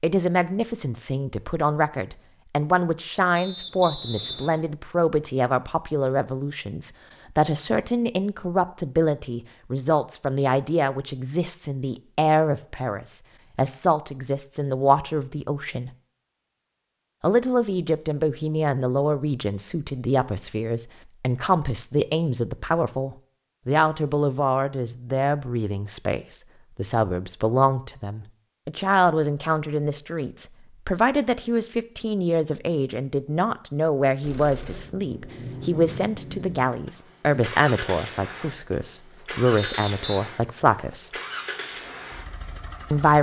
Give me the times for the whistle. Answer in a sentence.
You can hear the whistle from 3.4 to 4.7 s and from 39.5 to 40.2 s.